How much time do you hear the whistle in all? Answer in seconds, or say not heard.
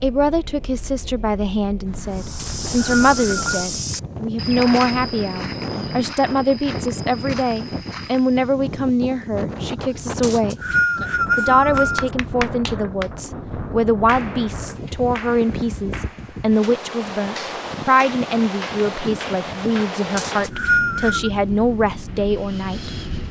4 s.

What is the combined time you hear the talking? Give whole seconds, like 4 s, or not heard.
22 s.